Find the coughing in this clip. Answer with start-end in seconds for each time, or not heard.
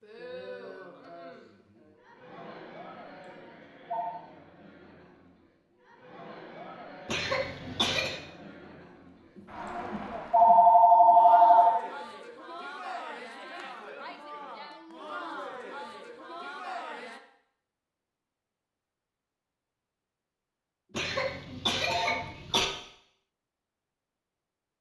7.0-8.2, 20.9-22.6.